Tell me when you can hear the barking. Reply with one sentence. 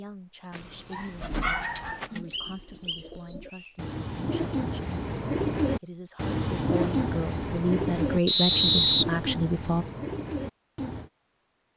The barking can be heard from 0.5 to 2.1 s.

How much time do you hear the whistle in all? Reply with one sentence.
You can hear the whistle for 2 seconds altogether.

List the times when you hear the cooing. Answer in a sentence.
The cooing can be heard from 0.5 to 11.1 s.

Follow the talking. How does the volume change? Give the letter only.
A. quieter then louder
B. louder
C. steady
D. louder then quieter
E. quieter
B.